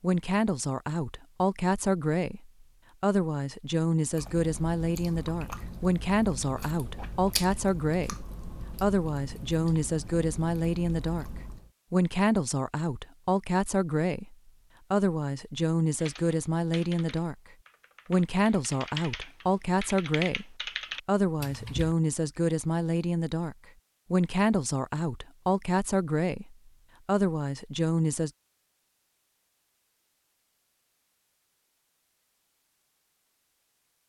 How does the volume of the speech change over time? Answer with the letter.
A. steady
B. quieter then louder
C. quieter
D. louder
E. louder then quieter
A.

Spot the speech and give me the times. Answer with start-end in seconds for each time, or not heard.
0.0-11.2, 11.9-17.4, 18.1-28.3.